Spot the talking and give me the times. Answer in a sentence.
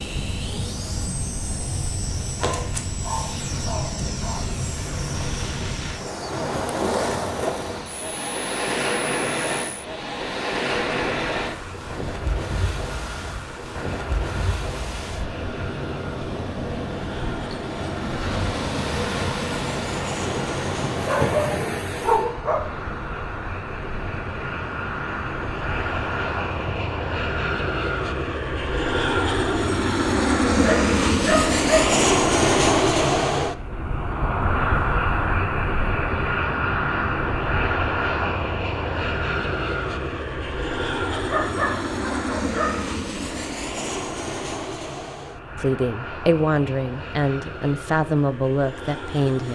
The talking can be heard from 45.5 to 49.5 s.